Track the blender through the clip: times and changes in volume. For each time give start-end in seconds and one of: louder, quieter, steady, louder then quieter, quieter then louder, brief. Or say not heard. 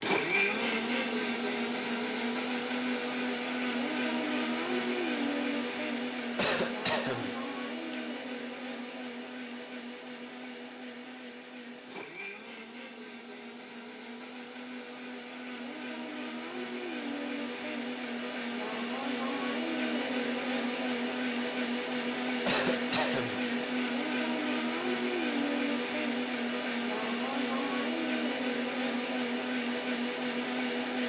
0.0-31.0 quieter then louder.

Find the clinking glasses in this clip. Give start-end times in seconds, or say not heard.
not heard.